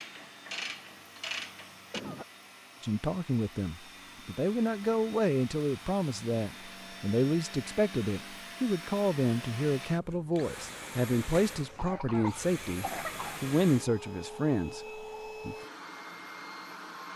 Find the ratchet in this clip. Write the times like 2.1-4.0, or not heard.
0.0-2.0.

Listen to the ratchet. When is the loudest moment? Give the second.
1 s.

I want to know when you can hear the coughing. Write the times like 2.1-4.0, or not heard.
1.8-2.2, 11.8-13.4.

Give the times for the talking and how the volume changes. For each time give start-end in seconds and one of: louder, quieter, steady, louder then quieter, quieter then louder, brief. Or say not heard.
2.8-15.6 steady.